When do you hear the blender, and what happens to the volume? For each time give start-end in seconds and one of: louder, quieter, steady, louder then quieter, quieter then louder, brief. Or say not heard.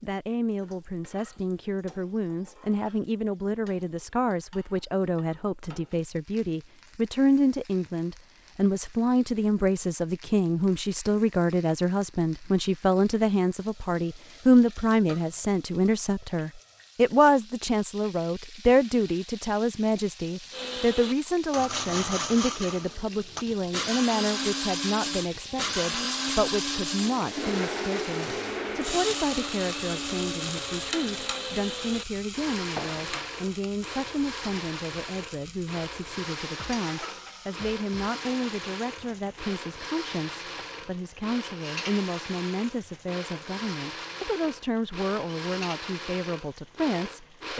20.5-47.5 quieter.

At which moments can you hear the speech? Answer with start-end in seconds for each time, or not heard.
0.0-47.5.